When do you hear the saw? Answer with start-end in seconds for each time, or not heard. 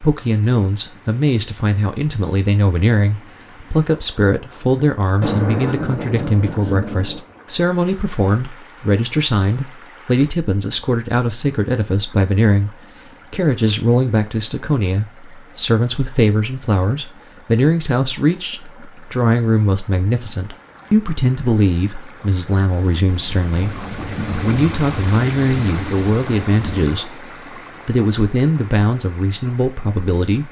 not heard.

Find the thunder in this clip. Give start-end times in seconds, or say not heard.
5.2-7.2, 23.1-26.9.